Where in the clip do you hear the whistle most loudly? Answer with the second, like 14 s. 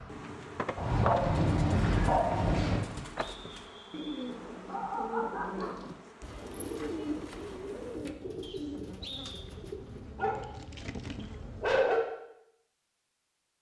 9 s.